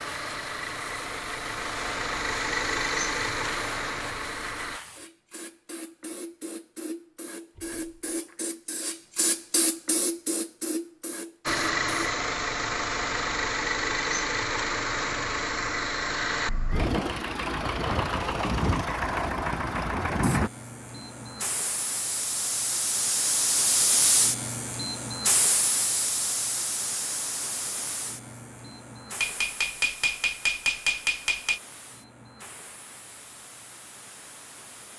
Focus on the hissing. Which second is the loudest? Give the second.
24 s.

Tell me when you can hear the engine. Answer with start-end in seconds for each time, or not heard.
0.0-4.8, 11.4-20.5.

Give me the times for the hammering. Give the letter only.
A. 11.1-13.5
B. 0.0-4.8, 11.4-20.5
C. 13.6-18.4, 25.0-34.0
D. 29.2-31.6
D.